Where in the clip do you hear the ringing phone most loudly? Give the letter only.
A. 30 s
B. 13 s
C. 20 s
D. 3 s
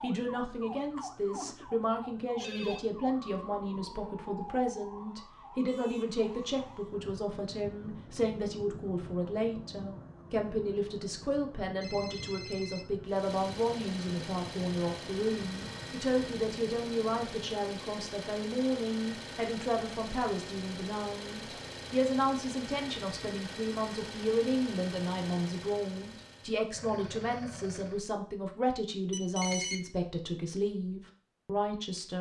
A.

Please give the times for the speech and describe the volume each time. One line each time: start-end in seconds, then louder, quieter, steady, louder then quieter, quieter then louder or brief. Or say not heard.
0.0-32.1 steady.